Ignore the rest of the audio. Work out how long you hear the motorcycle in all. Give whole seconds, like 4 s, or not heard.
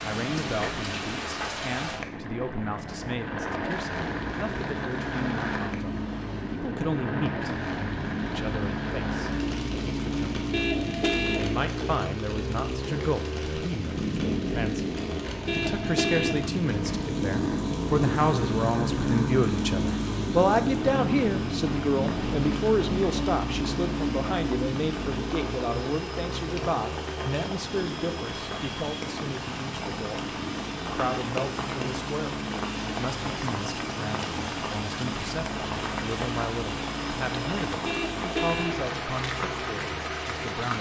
41 s.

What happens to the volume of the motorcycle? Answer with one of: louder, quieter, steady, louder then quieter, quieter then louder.
louder then quieter.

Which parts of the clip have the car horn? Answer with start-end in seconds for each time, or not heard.
10.5-11.6, 15.4-16.5, 37.9-38.9.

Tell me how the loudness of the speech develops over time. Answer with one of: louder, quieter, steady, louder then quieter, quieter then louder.
louder then quieter.